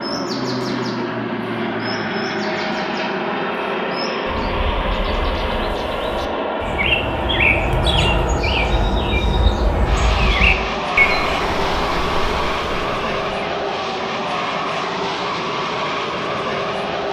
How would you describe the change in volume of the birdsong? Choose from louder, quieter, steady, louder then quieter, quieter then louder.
louder.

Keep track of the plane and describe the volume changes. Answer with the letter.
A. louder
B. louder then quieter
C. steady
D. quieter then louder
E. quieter
C.